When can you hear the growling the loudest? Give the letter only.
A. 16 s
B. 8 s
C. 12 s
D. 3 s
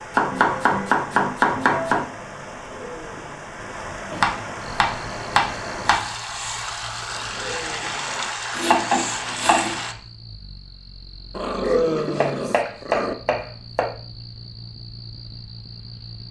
C.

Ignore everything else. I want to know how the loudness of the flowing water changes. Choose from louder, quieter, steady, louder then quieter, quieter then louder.
louder.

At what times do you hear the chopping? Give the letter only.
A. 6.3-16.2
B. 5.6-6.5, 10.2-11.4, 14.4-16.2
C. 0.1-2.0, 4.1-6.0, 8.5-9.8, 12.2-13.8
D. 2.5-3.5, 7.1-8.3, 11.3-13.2
C.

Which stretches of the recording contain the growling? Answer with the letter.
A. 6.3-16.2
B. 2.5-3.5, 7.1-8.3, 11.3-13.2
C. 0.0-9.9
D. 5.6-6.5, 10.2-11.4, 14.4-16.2
B.